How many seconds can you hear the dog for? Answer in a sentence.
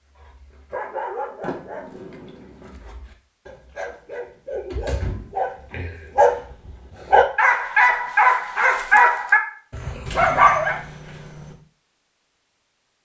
The dog can be heard for 11 seconds in total.